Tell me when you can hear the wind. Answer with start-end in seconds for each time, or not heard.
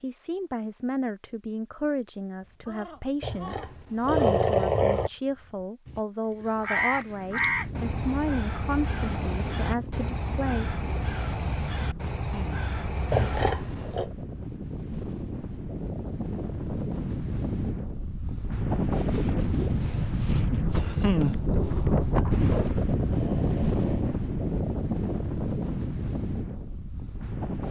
7.0-27.6.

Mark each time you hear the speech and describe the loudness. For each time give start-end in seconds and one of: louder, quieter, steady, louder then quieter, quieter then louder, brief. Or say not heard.
0.0-10.8 steady.